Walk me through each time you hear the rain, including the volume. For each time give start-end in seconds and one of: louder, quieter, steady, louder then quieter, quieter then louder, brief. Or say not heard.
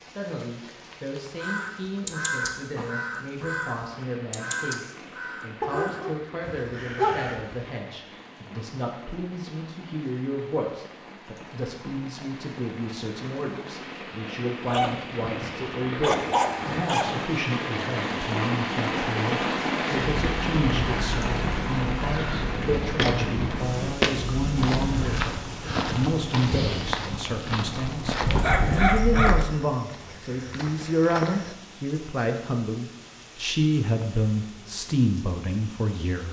0.0-36.2 louder then quieter.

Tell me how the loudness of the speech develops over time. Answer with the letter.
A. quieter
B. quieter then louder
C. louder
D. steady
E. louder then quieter
C.